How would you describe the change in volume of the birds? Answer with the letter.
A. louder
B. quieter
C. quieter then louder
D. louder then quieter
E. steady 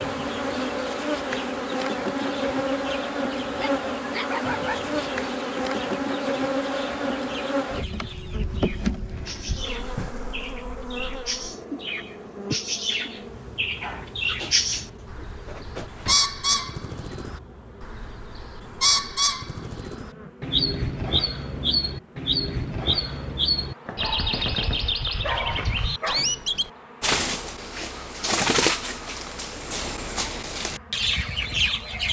A.